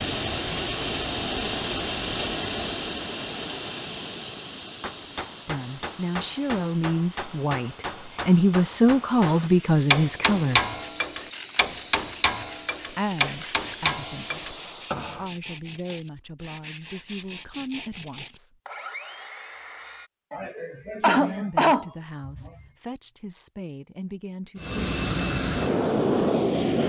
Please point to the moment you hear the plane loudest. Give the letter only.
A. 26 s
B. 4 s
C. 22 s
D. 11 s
A.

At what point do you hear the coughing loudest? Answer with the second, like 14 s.
22 s.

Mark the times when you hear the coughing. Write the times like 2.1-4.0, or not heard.
20.3-22.5.